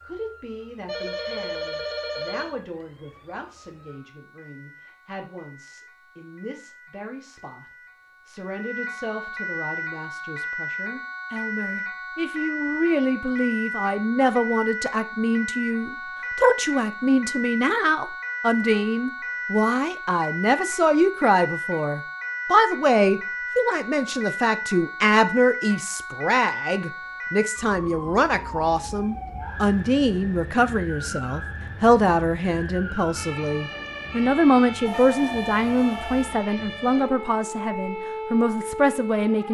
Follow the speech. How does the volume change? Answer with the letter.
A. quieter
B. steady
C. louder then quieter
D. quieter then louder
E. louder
E.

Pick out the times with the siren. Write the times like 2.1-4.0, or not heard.
0.0-39.4.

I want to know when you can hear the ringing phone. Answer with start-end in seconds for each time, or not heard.
0.8-2.5, 34.9-36.3.